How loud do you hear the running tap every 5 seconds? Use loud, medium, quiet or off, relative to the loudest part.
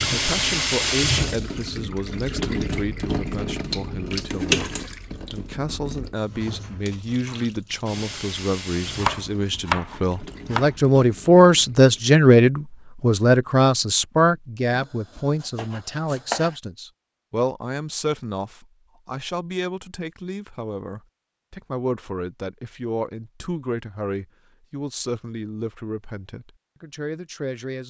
loud, quiet, quiet, off, off, off.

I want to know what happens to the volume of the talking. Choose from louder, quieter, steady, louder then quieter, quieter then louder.
louder then quieter.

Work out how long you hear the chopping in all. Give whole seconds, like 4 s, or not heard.
4 s.